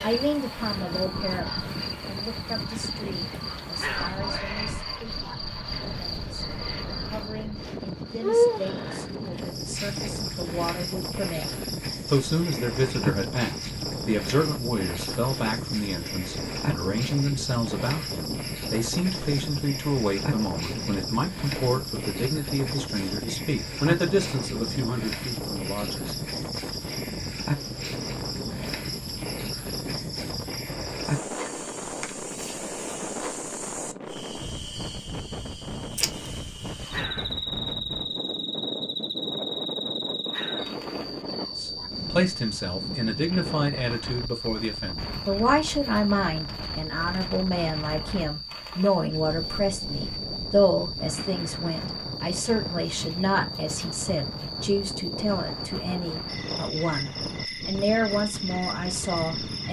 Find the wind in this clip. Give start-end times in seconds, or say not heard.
0.0-59.6.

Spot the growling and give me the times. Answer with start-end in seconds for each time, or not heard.
3.7-5.3, 36.9-37.5, 40.2-41.9.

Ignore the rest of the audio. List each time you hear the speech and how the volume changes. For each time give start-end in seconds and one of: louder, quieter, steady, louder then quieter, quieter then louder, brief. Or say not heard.
0.0-11.4 quieter then louder
12.1-26.1 steady
41.5-59.6 steady.